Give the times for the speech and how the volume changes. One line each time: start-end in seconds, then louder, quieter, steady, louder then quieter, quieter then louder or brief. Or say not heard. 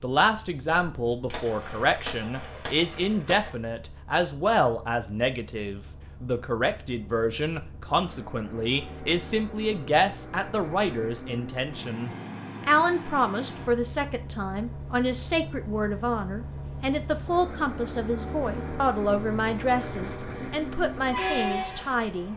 0.0-22.3 steady.